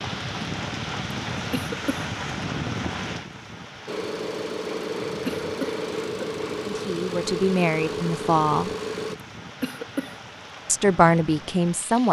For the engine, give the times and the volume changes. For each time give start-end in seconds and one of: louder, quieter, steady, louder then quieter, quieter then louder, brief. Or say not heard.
3.9-9.2 steady.